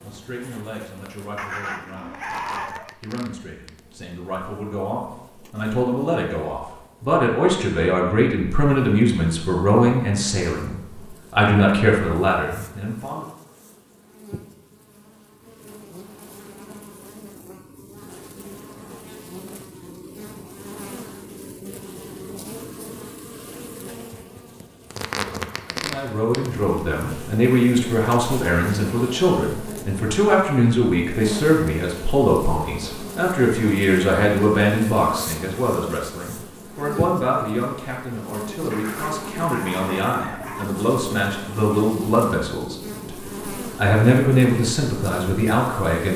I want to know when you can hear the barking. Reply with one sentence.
You can hear the barking from 1.4 to 3.0 s and from 38.7 to 40.7 s.